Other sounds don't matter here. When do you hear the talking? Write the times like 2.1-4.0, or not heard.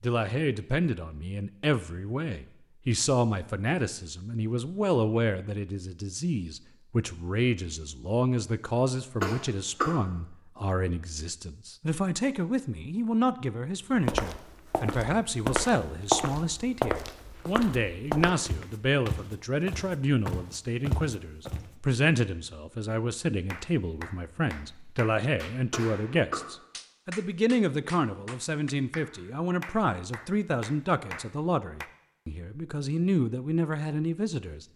0.0-34.6.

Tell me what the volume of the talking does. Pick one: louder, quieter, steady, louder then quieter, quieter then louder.
steady.